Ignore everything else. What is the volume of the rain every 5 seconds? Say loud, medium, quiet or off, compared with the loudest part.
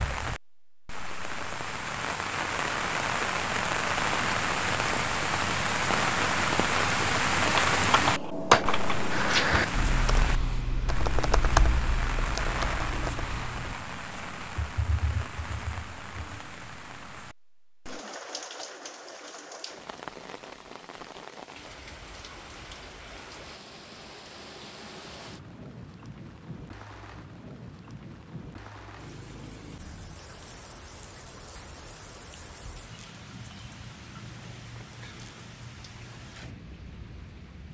loud, loud, medium, quiet, quiet, quiet, quiet, quiet.